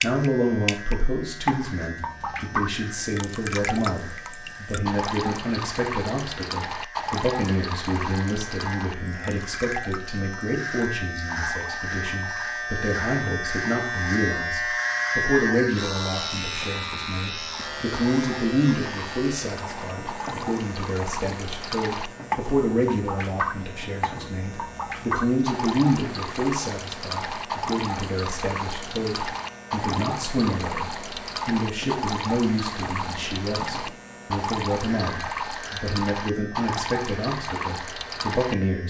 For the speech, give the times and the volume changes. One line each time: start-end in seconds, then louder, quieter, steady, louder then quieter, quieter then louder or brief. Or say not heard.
0.0-38.8 steady.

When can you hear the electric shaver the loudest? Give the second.
15 s.